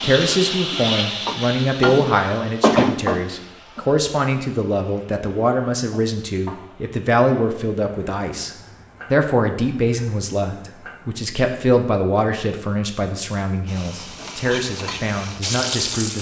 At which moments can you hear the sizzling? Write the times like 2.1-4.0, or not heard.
0.0-11.2, 13.7-16.1.